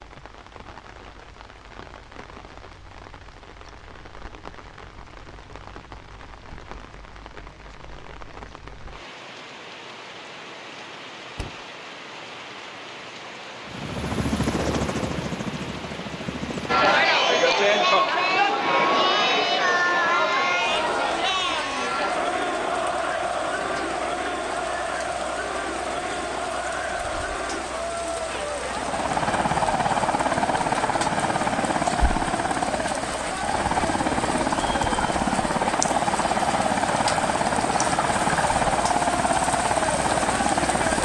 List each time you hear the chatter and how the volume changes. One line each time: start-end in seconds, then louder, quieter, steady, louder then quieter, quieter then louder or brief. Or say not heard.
16.6-41.0 quieter.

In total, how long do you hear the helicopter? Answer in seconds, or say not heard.
16 s.